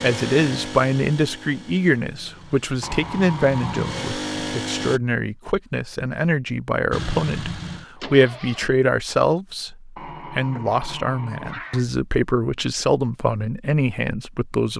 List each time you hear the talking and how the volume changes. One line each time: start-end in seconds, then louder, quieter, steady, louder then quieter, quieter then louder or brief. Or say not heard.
0.0-14.7 steady.